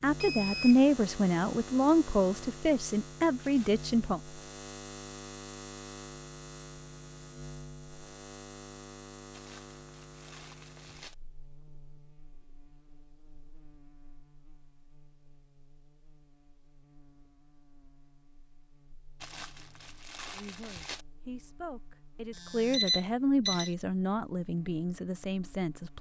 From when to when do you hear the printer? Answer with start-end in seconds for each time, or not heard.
not heard.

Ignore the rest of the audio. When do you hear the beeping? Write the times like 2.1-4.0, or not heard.
0.2-0.9, 22.4-23.7.